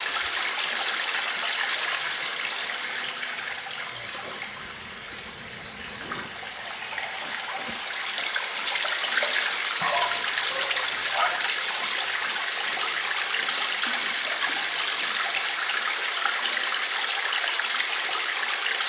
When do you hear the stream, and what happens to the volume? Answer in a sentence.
You can hear the stream from 0.0 to 18.8 s, getting quieter then louder.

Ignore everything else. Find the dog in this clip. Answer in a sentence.
You can hear the dog from 9.8 to 11.3 s.